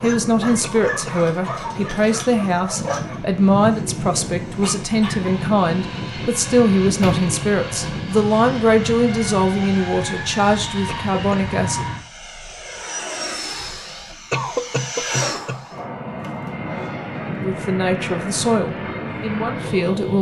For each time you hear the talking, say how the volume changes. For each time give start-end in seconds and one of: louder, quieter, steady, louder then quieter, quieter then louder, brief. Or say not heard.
0.0-11.8 steady
17.4-20.1 brief.